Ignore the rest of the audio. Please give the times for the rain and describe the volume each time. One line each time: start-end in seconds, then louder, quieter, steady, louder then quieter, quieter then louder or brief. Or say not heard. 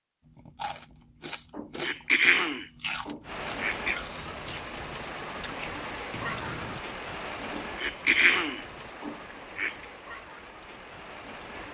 3.2-11.6 quieter.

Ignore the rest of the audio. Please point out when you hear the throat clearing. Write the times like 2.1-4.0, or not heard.
1.5-4.0, 7.5-9.8.